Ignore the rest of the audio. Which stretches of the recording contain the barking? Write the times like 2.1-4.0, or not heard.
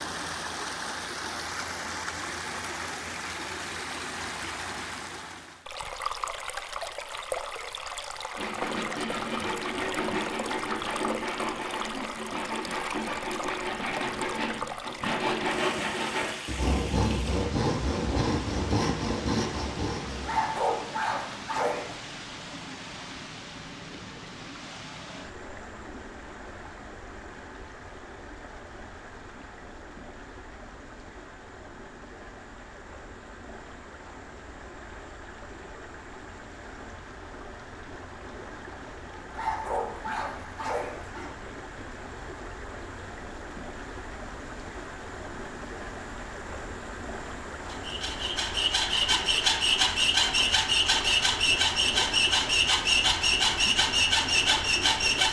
20.2-21.9, 39.3-41.3.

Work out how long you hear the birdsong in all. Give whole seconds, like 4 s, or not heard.
not heard.